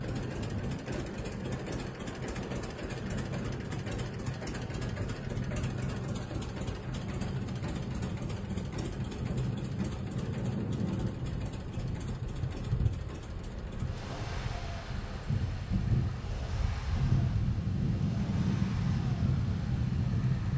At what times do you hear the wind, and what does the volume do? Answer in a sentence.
You can hear the wind from 0.0 to 20.5 s, getting louder.